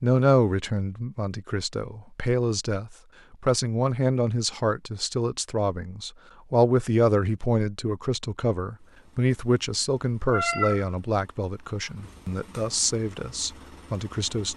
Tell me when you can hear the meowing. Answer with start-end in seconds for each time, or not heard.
10.2-10.9.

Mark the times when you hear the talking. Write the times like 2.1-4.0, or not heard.
0.0-14.5.